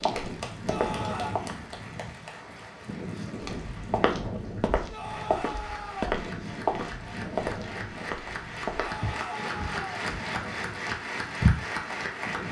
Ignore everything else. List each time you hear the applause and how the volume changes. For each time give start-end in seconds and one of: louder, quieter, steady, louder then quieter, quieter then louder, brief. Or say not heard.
0.0-12.4 quieter then louder.